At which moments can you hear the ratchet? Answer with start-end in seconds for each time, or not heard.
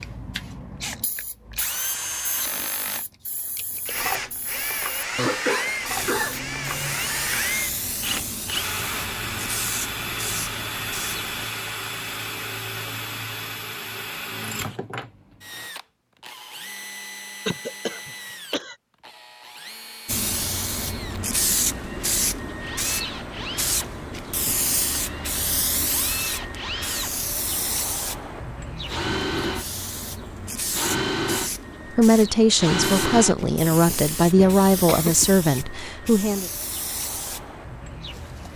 not heard.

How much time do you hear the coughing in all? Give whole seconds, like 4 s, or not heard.
4 s.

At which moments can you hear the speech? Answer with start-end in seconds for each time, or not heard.
31.9-36.5.